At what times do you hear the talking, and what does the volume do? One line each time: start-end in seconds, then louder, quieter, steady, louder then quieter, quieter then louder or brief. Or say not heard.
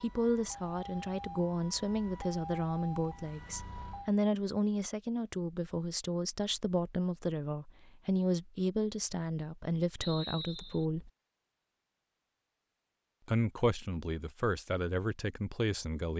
0.0-11.1 steady
13.2-16.1 brief.